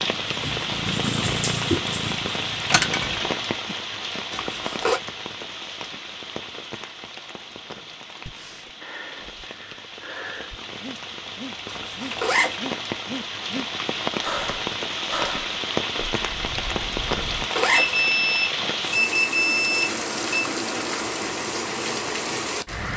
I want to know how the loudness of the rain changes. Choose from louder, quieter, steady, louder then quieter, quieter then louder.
quieter then louder.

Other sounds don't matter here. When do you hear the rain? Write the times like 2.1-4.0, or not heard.
0.0-22.9.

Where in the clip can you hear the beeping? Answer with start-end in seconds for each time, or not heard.
2.7-3.1, 17.8-20.4.